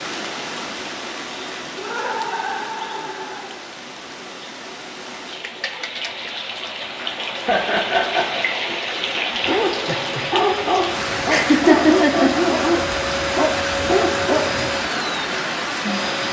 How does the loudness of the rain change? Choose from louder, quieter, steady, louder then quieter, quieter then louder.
louder.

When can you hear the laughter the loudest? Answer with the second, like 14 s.
12 s.